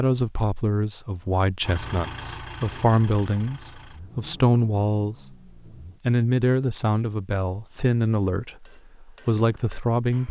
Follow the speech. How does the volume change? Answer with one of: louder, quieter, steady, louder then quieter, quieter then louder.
steady.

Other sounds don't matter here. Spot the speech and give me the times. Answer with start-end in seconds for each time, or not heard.
0.0-5.3, 6.0-10.2.